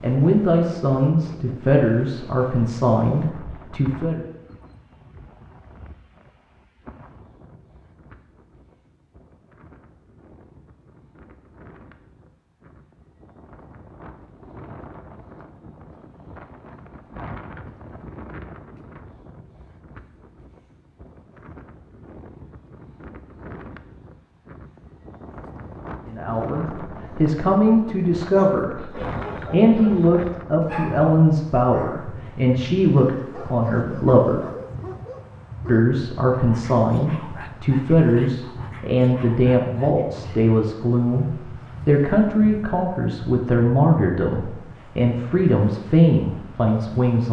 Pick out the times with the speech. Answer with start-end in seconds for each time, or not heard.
0.0-4.2, 26.1-34.5, 35.6-47.2.